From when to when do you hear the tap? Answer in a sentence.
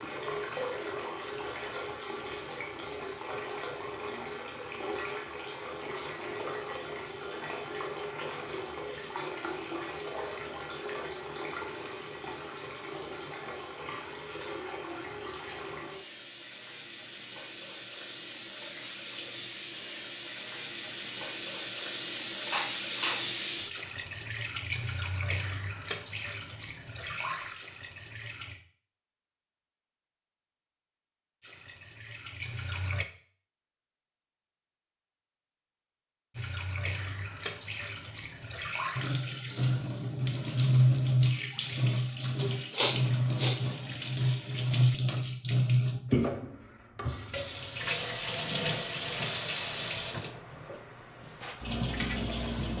The tap can be heard from 0.0 to 28.6 s, from 31.4 to 33.0 s and from 36.4 to 52.7 s.